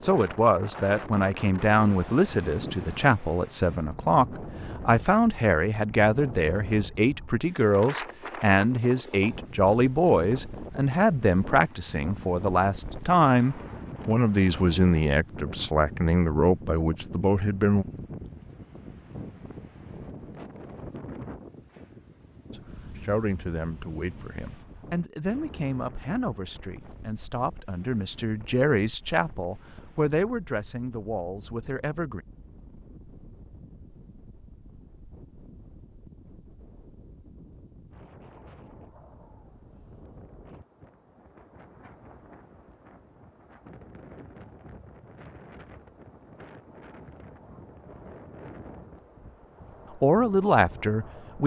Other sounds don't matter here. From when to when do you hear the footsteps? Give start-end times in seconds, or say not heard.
not heard.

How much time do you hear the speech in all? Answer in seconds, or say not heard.
29 s.